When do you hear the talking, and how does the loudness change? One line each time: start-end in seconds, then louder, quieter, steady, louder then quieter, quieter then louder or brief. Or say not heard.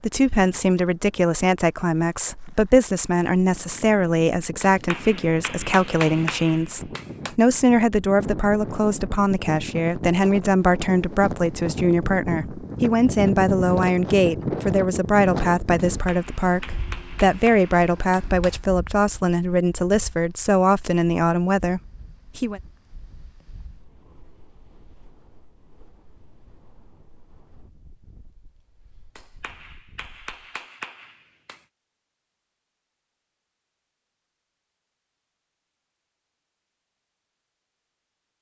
0.0-22.6 steady.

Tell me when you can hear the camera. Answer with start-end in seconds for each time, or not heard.
not heard.